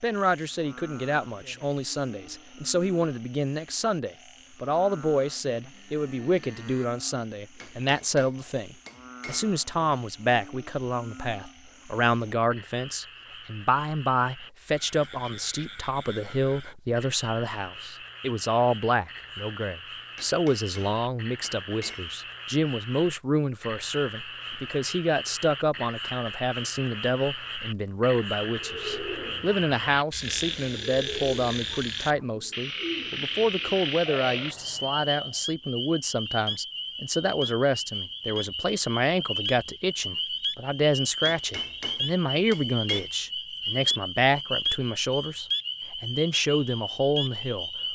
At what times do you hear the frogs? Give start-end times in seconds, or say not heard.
0.0-47.9.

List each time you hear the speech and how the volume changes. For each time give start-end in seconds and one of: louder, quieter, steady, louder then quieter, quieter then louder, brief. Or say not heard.
0.0-47.9 steady.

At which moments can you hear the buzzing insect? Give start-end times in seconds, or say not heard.
not heard.